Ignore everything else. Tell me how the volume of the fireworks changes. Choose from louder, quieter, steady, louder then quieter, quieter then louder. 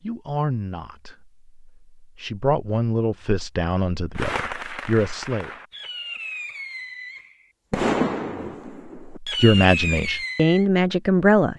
louder.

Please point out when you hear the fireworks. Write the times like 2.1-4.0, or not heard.
4.2-10.7.